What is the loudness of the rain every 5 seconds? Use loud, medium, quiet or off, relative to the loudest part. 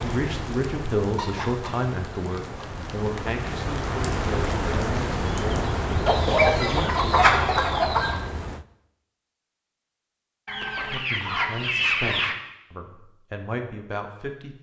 loud, loud, off.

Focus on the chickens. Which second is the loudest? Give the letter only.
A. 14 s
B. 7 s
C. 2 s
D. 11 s
B.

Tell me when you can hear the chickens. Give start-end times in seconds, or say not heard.
1.1-2.7, 6.0-8.2, 10.4-12.3.